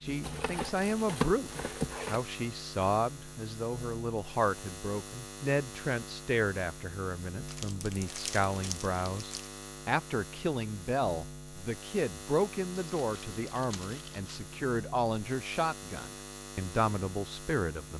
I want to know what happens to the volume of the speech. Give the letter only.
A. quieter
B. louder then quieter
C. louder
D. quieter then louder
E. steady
E.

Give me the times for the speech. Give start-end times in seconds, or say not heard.
0.0-17.9.